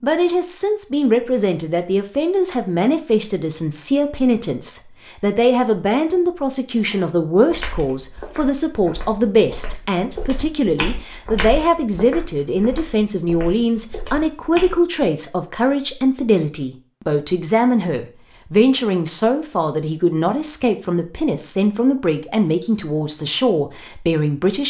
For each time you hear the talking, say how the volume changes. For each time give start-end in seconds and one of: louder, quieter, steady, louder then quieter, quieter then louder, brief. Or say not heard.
0.0-24.6 steady.